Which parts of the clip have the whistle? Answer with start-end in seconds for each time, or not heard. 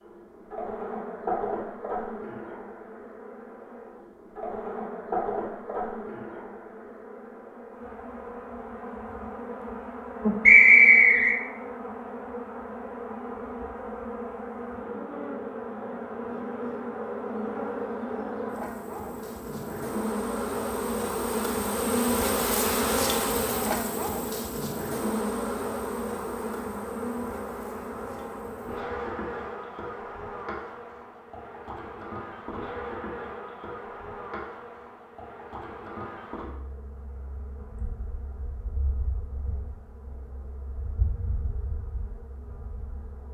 10.4-11.3.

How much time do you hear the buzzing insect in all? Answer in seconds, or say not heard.
43 s.